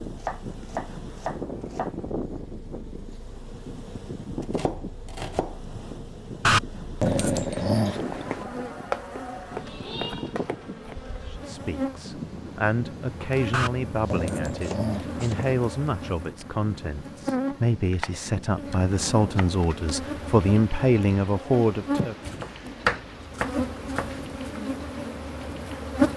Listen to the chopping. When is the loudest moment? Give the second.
23 s.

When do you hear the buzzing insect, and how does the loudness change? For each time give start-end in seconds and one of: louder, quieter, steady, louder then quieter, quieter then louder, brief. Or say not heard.
0.1-26.1 louder.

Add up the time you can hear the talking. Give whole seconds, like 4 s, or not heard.
11 s.